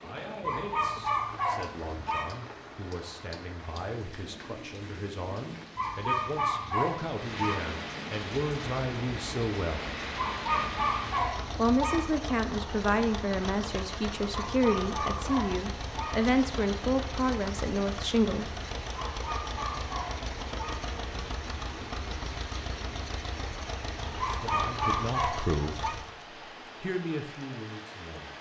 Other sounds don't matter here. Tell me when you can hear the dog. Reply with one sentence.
You can hear the dog from 0.4 to 2.4 s, from 5.8 to 7.6 s, from 10.2 to 12.2 s, from 14.3 to 16.3 s, from 18.9 to 20.9 s and from 24.2 to 25.9 s.